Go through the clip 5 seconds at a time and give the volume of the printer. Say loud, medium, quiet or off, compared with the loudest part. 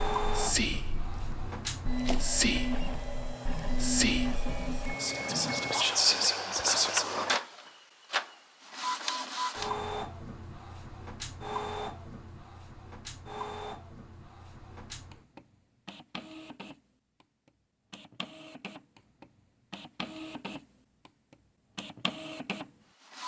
loud, loud, medium, quiet, medium.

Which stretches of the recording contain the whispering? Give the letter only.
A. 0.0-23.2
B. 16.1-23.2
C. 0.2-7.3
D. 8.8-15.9
C.